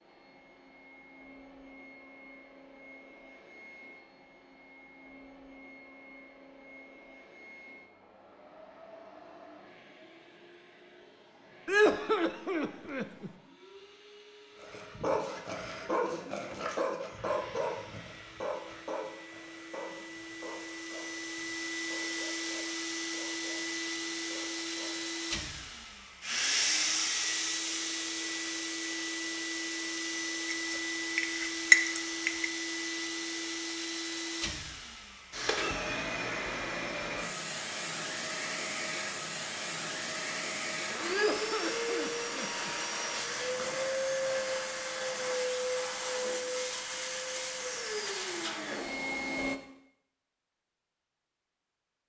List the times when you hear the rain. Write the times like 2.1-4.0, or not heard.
not heard.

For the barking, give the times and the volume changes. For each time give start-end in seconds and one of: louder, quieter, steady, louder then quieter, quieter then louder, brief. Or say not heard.
14.6-25.1 quieter.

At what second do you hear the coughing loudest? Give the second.
12 s.